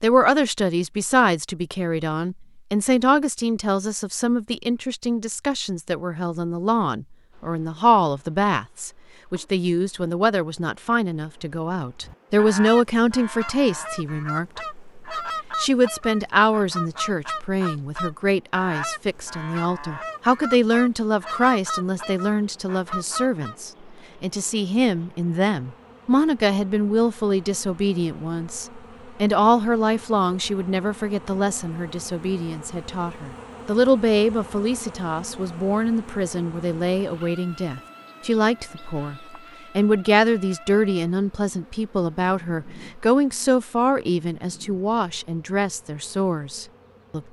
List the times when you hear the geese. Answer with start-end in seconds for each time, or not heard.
12.0-23.6.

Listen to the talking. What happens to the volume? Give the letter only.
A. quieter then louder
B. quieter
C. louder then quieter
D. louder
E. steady
E.